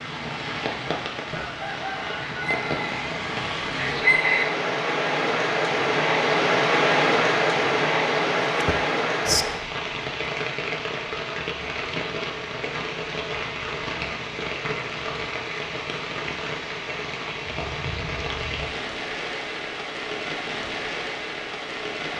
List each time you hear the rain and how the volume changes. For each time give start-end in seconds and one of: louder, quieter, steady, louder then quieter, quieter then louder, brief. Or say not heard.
0.0-22.1 louder then quieter.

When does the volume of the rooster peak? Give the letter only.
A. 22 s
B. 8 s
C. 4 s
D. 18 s
C.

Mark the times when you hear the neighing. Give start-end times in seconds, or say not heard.
8.4-9.4.